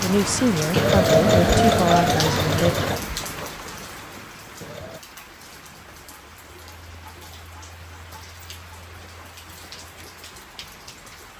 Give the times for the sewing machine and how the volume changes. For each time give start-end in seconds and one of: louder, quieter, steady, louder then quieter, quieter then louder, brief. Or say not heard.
0.0-5.0 quieter.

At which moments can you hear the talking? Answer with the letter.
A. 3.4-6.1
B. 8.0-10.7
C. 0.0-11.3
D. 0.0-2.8
D.